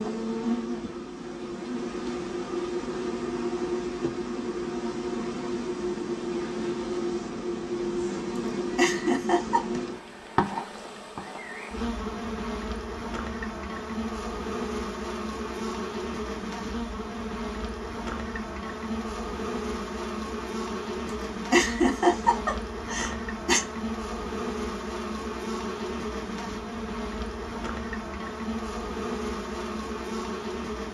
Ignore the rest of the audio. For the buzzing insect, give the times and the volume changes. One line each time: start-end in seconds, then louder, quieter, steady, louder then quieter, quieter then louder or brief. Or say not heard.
0.0-30.8 steady.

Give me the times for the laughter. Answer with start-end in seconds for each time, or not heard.
8.8-9.6, 21.5-23.6.